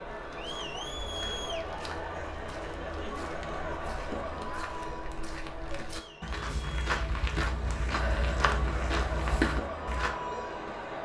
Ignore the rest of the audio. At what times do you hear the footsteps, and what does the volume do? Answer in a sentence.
You can hear the footsteps from 0.0 to 10.2 s, getting louder.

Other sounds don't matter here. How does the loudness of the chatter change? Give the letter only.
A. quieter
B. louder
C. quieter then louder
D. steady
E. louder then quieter
C.